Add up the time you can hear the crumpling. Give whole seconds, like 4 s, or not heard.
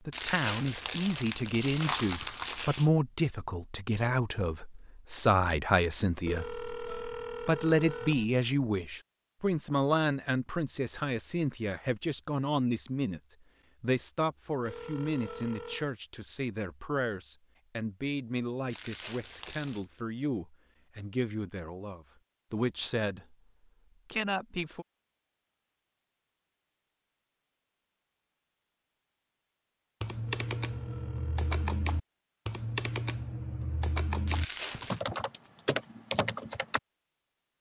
5 s.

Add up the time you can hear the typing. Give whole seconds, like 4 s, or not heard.
7 s.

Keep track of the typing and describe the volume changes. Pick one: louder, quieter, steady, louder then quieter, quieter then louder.
steady.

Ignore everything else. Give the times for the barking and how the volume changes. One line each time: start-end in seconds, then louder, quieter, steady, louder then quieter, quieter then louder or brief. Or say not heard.
not heard.